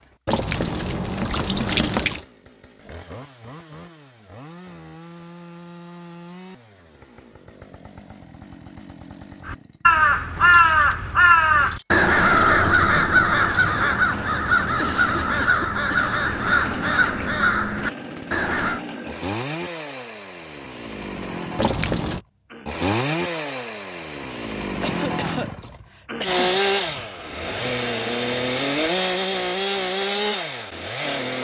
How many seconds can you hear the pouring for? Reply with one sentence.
You can hear the pouring for 3 seconds altogether.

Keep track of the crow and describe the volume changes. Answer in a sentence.
The volume of the crow goes down.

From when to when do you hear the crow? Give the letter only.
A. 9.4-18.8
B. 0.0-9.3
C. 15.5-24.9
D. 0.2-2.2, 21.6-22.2
A.